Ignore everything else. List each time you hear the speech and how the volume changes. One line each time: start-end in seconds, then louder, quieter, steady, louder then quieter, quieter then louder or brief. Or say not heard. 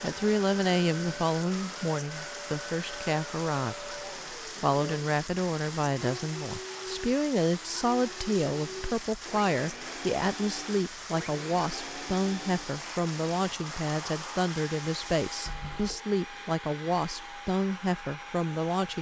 0.0-18.9 steady.